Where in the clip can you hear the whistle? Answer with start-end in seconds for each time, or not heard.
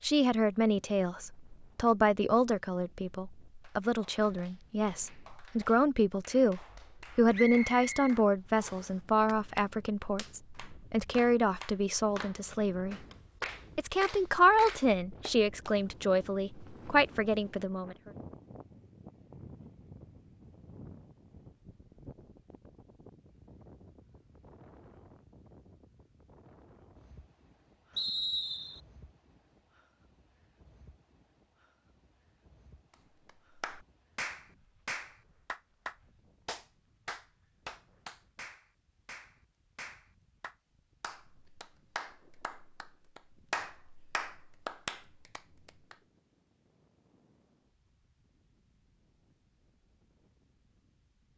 7.3-8.9, 27.9-28.8.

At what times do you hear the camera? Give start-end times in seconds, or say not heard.
not heard.